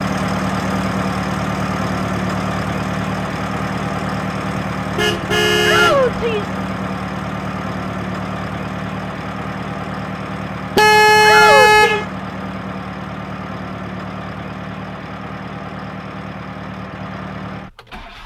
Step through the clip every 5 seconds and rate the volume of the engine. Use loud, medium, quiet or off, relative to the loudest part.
loud, loud, medium, medium.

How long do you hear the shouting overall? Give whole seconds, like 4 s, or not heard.
2 s.